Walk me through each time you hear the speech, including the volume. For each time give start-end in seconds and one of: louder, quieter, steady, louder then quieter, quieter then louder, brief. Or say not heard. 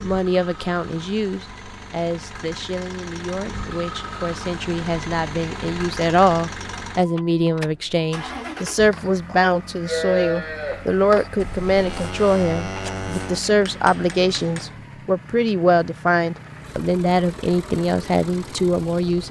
0.1-19.2 louder.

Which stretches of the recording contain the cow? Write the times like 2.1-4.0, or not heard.
8.9-13.4.